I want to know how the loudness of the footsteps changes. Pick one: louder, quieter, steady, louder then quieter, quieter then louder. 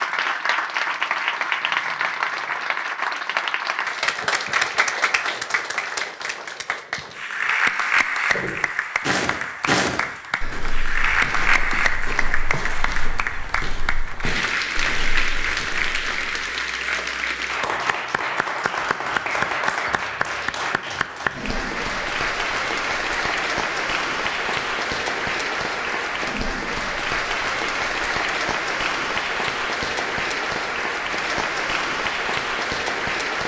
quieter.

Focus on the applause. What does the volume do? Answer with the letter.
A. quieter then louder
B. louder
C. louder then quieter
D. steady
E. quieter
D.